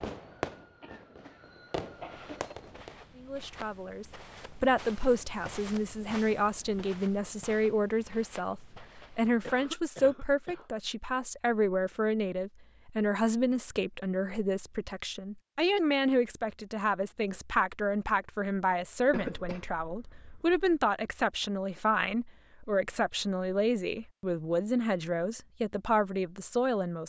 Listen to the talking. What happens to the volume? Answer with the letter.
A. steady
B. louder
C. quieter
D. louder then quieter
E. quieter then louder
A.